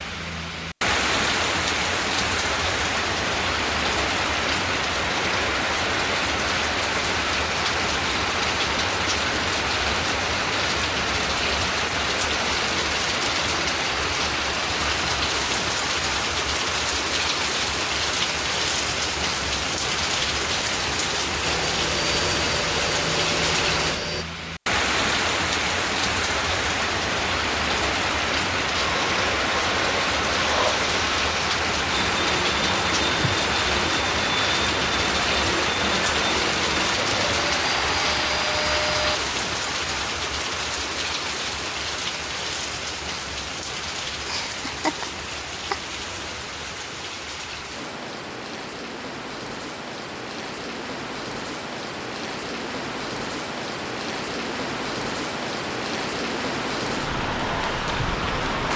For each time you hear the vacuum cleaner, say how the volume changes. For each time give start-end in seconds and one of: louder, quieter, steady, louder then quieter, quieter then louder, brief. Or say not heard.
21.4-24.2 brief
28.7-39.2 steady.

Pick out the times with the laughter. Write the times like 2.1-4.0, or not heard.
44.2-45.8.